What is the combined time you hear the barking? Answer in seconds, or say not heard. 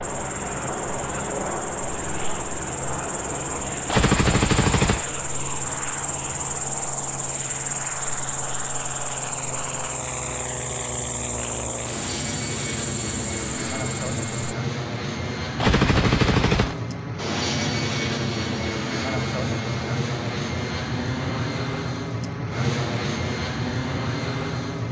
not heard.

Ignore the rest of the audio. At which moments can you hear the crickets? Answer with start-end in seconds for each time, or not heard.
0.0-14.3.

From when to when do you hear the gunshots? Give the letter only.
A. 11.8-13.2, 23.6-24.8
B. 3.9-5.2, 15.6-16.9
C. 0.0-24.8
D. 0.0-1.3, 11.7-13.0
B.